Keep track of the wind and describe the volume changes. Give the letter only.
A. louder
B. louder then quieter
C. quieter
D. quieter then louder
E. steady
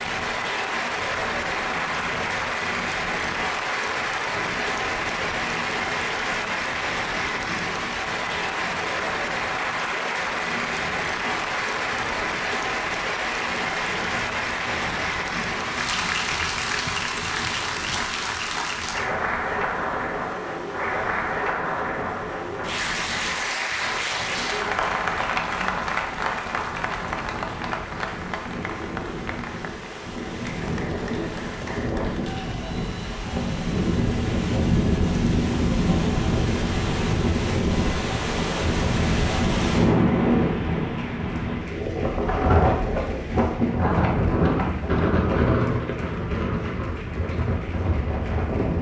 A.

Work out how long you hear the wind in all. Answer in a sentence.
You can hear the wind for 49 seconds altogether.